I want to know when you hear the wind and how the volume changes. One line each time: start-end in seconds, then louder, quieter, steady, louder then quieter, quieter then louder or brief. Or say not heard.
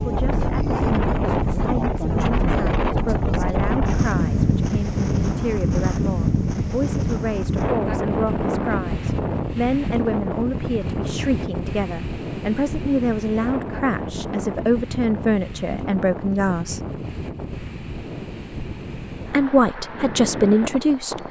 0.0-21.2 quieter.